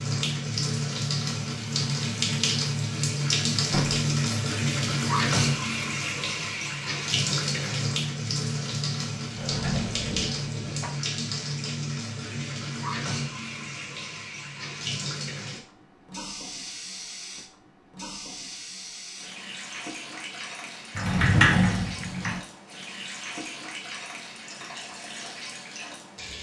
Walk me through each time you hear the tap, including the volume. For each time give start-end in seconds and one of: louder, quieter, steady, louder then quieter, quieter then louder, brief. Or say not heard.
0.0-26.3 quieter.